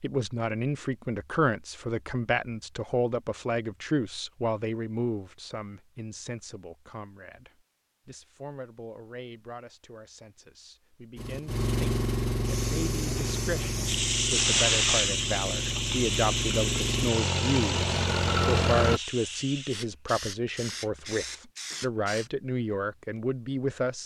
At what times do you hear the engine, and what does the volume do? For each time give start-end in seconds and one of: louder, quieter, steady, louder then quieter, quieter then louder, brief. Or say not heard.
11.2-19.0 quieter then louder.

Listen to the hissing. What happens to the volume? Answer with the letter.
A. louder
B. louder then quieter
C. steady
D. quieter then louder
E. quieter
E.